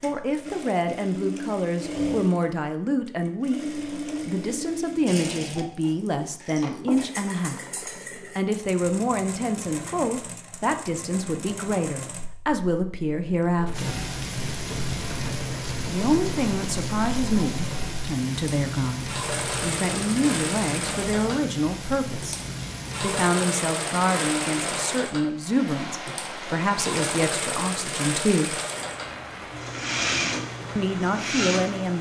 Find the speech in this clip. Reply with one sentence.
The speech can be heard from 0.0 to 7.6 s, from 8.3 to 13.9 s, from 15.8 to 22.4 s, from 23.0 to 28.6 s and from 30.8 to 31.9 s.